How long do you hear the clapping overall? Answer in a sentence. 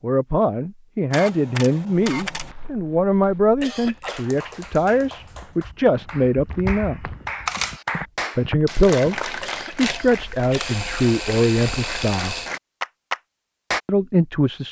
The clapping can be heard for 10 seconds in total.